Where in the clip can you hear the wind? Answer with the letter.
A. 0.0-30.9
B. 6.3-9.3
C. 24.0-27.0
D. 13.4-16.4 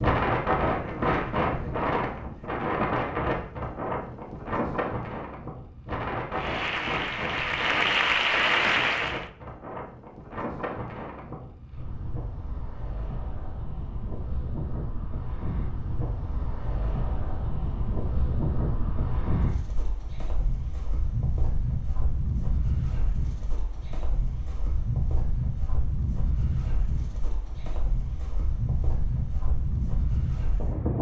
A.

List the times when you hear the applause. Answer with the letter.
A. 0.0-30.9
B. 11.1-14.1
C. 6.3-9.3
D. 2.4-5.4
C.